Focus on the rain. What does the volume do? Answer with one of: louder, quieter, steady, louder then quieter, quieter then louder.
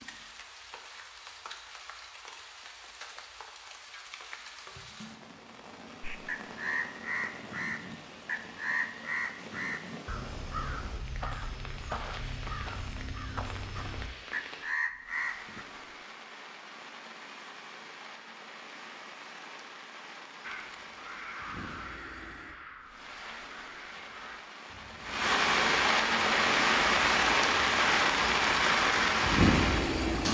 louder.